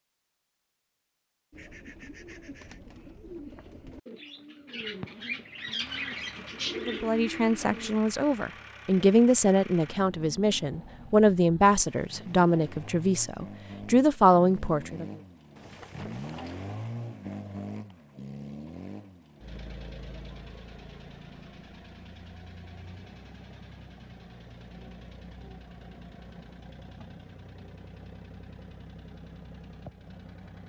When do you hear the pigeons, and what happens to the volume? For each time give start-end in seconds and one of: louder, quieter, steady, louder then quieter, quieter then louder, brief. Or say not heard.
1.5-8.0 louder.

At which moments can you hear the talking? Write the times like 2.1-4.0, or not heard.
6.8-15.1.